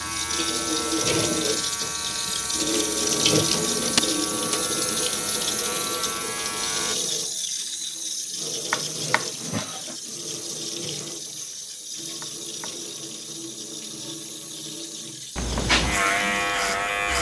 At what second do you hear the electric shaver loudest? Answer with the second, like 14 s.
16 s.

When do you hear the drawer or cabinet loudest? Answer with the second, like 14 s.
4 s.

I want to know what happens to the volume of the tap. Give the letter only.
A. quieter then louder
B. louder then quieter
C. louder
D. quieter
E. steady
D.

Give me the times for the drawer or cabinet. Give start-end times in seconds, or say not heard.
3.4-4.0, 8.7-9.9, 12.2-12.8.